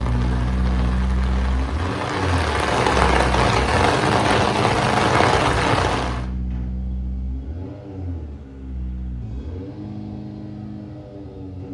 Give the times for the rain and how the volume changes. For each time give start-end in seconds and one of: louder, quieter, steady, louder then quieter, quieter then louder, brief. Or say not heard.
0.0-6.2 louder.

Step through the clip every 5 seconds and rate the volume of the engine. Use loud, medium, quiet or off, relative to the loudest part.
loud, medium, medium.